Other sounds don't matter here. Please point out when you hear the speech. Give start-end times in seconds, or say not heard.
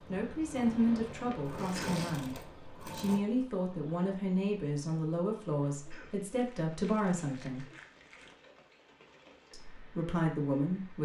0.1-7.7, 9.5-10.9.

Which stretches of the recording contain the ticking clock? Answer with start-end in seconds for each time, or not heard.
not heard.